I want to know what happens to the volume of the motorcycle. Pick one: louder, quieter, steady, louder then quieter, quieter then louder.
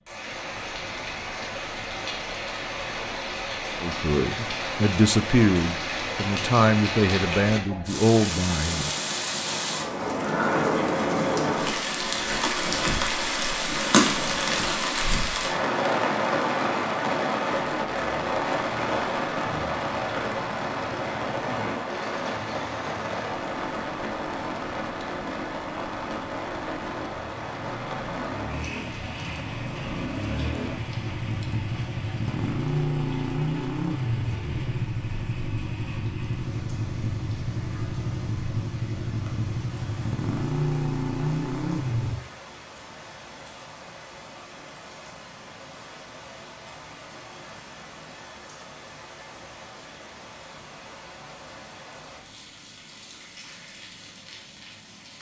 louder.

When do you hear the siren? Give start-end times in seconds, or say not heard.
not heard.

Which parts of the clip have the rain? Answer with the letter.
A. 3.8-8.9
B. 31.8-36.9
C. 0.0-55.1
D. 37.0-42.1
C.